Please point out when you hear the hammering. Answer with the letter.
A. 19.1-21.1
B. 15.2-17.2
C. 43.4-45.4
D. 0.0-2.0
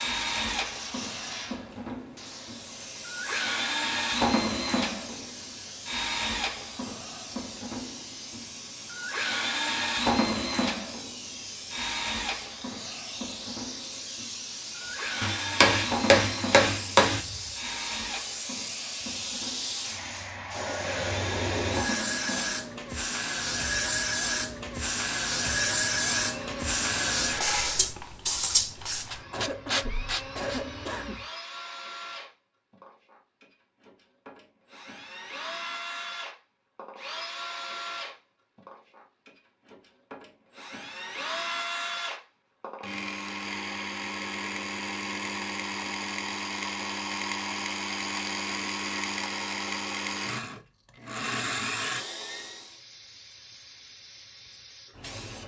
B.